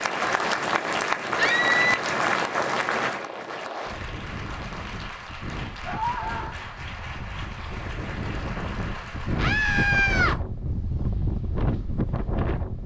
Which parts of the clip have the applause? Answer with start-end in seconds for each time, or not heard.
0.0-10.3.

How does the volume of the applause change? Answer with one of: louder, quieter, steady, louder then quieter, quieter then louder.
quieter.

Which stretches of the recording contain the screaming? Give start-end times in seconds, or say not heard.
1.4-2.0, 5.8-6.6, 9.3-10.3.